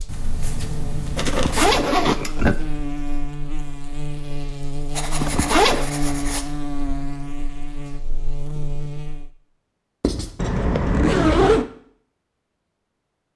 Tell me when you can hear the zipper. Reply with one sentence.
You can hear the zipper from 1.2 to 2.5 s, from 5.2 to 5.9 s and from 10.3 to 11.7 s.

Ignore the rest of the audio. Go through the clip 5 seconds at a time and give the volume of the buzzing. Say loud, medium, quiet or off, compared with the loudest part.
loud, loud, off.